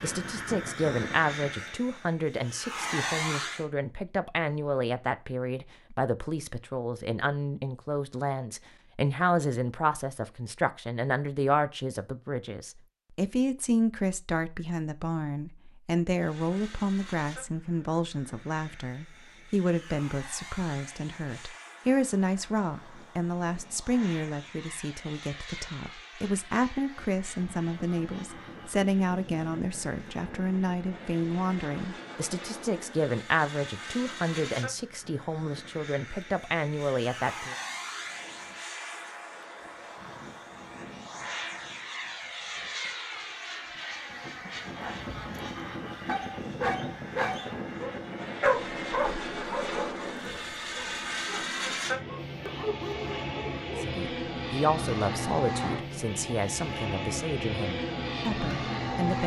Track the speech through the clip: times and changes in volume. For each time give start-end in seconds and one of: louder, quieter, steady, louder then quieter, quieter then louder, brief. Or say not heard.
0.0-37.5 steady
53.8-59.2 quieter.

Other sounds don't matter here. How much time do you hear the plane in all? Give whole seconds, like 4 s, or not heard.
47 s.